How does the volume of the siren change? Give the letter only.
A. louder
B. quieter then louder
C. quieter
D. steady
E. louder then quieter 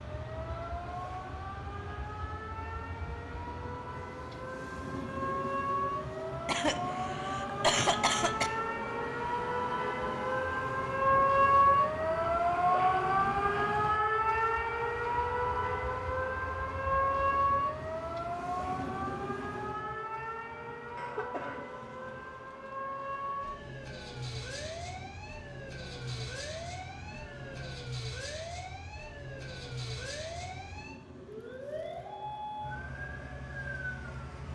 E.